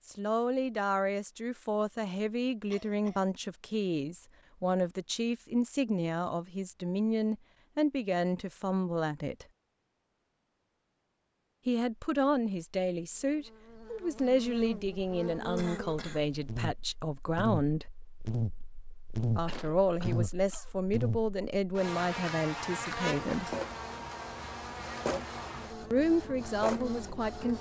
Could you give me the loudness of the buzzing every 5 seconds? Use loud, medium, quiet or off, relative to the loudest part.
off, off, medium, loud, loud, medium.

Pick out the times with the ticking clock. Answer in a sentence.
You can't hear the ticking clock here.